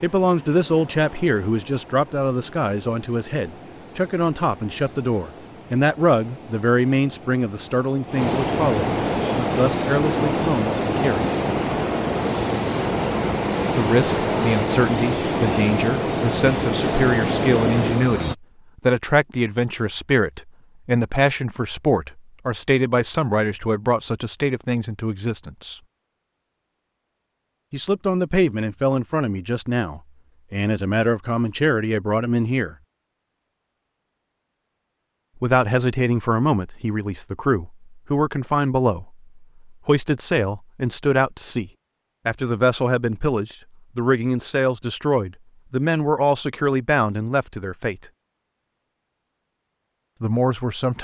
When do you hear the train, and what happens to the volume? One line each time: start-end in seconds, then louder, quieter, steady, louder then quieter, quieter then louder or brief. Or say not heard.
0.0-18.4 louder.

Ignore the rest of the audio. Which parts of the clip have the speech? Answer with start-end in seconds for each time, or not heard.
0.0-11.3, 13.8-25.8, 27.7-32.8, 35.4-48.0, 50.2-50.9.